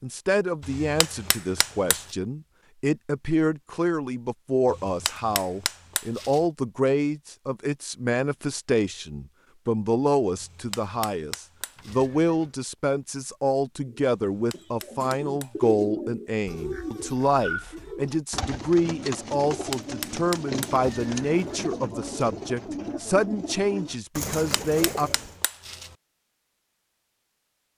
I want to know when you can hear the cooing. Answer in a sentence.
The cooing can be heard from 13.8 to 25.4 s.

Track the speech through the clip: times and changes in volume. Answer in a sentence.
The speech can be heard from 0.0 to 25.1 s, at a steady volume.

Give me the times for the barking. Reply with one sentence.
You can't hear the barking here.